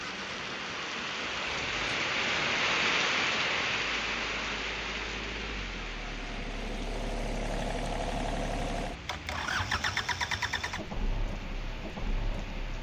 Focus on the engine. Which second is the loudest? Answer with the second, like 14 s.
10 s.